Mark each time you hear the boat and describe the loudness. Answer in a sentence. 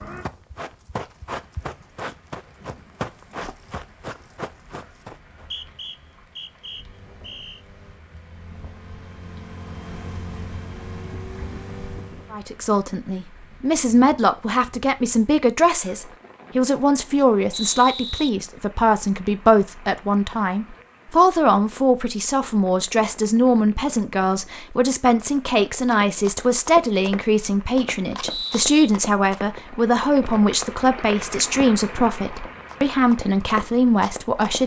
You can hear the boat from 6.6 to 12.4 s, getting louder.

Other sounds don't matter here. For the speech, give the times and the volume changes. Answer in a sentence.
You can hear the speech from 12.3 to 34.6 s, at a steady volume.